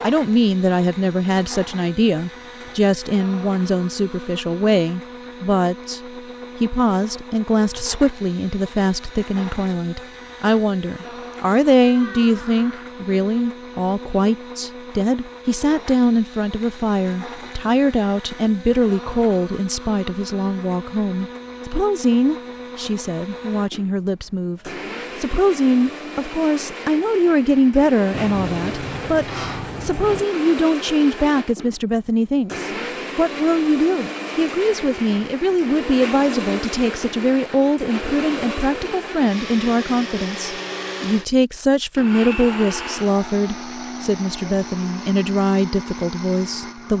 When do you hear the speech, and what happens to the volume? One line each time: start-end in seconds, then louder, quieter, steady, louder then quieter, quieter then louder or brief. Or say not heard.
0.0-46.9 steady.